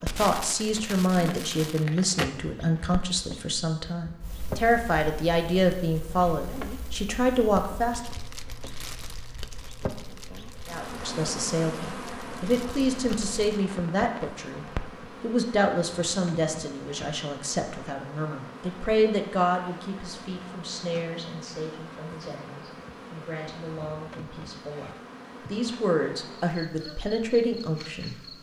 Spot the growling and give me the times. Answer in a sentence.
You can't hear the growling here.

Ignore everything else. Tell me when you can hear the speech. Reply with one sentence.
The speech can be heard from 0.0 to 8.0 s and from 10.7 to 28.3 s.